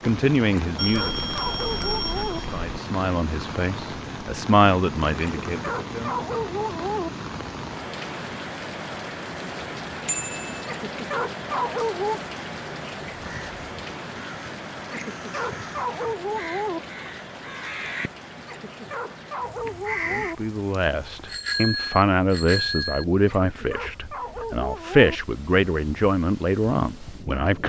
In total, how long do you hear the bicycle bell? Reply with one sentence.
The bicycle bell can be heard for 4 seconds in total.